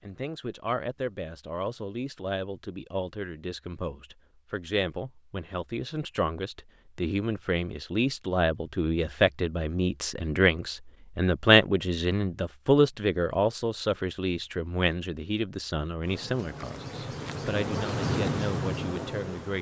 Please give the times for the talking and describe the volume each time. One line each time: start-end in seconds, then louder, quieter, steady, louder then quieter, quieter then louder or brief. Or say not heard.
0.0-19.5 louder then quieter.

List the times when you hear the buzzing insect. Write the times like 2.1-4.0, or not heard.
16.0-19.5.